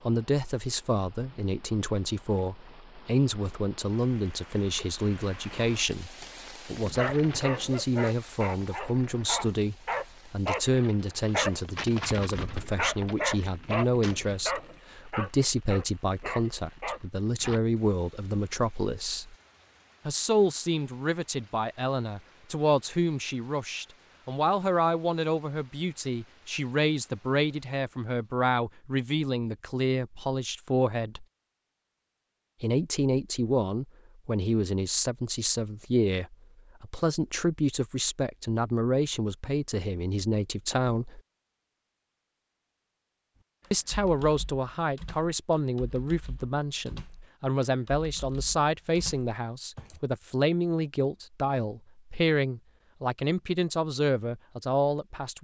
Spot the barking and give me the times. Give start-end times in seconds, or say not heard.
6.8-17.6.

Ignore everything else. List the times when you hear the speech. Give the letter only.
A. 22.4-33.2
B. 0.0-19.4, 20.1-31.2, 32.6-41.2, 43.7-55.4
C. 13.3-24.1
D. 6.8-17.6
B.